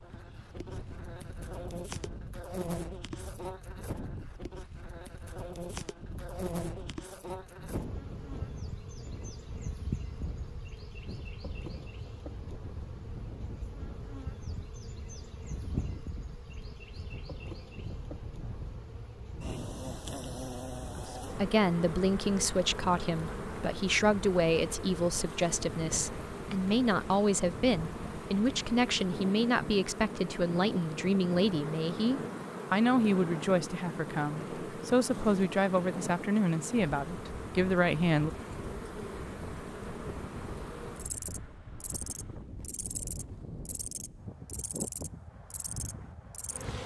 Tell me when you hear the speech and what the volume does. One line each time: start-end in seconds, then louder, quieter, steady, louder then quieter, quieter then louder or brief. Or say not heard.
20.9-38.3 steady.